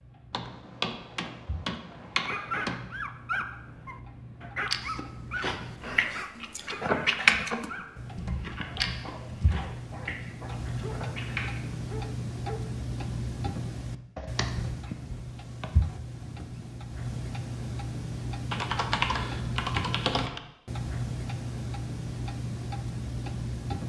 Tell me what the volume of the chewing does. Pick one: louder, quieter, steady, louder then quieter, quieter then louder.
louder then quieter.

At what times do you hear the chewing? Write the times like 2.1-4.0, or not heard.
4.7-11.8.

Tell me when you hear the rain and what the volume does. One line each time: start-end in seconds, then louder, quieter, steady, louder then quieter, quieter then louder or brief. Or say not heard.
not heard.